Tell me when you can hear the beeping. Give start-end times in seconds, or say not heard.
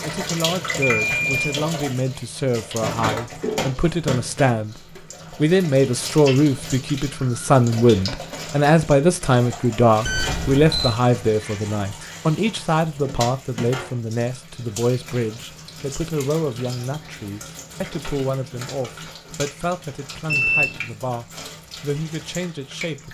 1.0-1.4, 10.1-10.9, 20.2-20.8.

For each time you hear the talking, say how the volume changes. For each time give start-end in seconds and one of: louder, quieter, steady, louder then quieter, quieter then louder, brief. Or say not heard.
0.0-23.0 louder then quieter.